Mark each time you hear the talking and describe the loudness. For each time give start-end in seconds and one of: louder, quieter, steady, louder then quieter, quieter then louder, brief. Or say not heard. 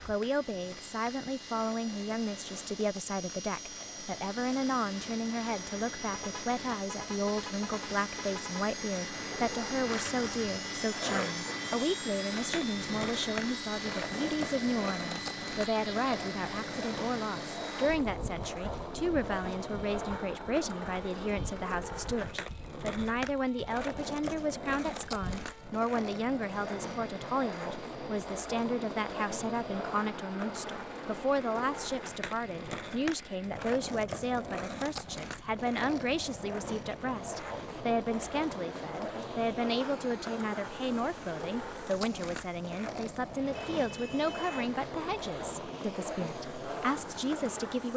0.1-47.9 steady.